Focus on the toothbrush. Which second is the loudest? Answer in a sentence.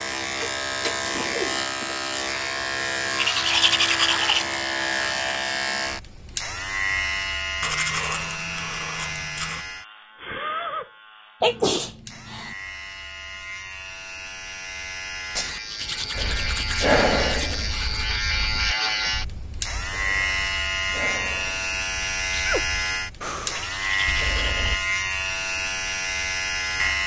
The loudest moment of the toothbrush is at 4 seconds.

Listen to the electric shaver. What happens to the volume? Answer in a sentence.
The volume of the electric shaver goes down, then up.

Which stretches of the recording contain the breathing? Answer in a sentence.
The breathing can be heard from 16.1 to 24.8 s.